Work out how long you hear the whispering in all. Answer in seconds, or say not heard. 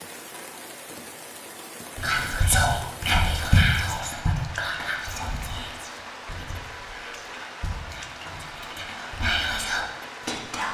9 s.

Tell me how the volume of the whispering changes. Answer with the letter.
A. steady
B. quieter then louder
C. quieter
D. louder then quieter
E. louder
B.